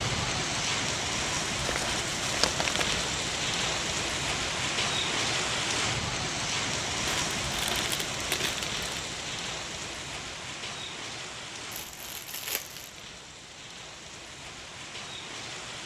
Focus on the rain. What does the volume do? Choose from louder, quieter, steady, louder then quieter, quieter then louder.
quieter.